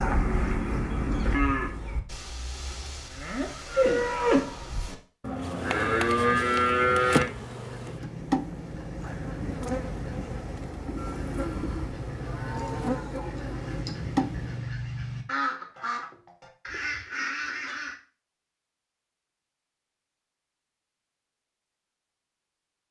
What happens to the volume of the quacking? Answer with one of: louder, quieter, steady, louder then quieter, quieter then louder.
louder.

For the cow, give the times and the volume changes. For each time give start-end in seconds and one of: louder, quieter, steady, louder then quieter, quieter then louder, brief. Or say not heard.
0.0-7.2 quieter then louder
10.9-13.9 brief.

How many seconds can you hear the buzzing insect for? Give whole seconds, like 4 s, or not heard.
9 s.